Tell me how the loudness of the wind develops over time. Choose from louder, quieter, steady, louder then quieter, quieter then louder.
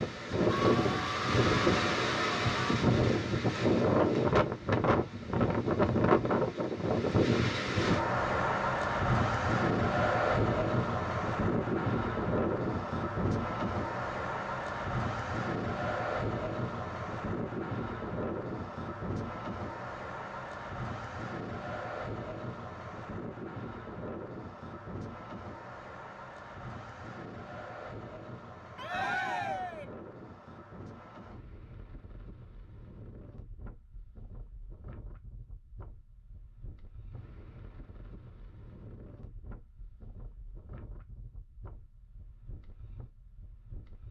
quieter.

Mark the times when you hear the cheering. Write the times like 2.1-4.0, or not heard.
0.5-2.8, 28.8-29.9.